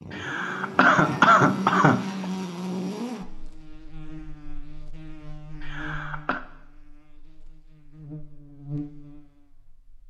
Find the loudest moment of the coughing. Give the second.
1 s.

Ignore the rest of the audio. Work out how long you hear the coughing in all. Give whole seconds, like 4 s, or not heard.
3 s.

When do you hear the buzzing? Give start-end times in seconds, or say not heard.
0.0-9.8.